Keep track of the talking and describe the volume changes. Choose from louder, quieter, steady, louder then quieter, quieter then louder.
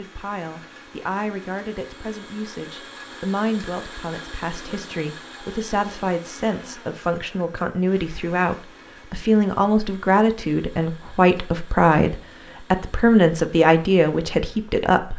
louder.